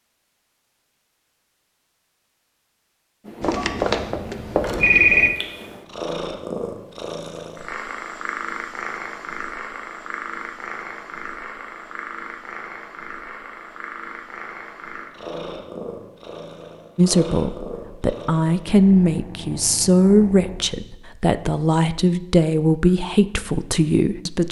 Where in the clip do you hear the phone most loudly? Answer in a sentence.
The loudest moment of the phone is at 5 seconds.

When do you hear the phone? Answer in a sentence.
The phone can be heard from 3.4 to 5.3 s.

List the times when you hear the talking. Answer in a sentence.
You can hear the talking from 16.9 to 24.4 s.